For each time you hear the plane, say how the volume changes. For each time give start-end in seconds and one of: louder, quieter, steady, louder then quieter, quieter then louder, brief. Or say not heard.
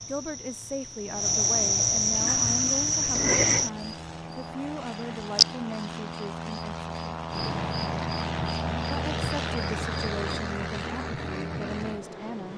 2.1-12.5 louder.